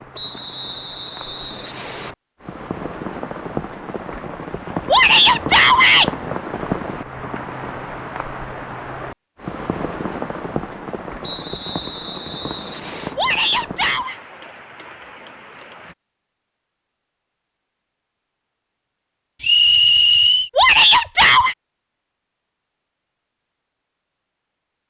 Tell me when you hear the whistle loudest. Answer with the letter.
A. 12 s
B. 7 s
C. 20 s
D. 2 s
C.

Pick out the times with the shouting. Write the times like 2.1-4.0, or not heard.
4.8-6.1, 13.2-14.2, 20.6-21.6.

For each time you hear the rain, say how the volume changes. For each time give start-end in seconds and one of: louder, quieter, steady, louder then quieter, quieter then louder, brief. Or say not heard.
0.0-15.9 louder then quieter.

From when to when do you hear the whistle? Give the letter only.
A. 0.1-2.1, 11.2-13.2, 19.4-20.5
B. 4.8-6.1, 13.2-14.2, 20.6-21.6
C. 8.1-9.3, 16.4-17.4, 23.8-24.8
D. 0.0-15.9
A.